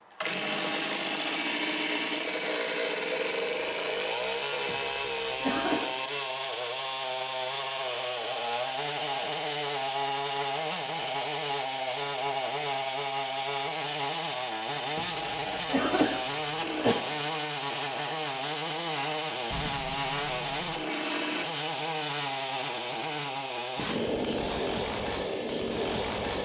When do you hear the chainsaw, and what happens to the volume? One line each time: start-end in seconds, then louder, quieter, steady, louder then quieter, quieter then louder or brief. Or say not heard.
0.0-26.4 steady.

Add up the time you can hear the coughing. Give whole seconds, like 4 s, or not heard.
3 s.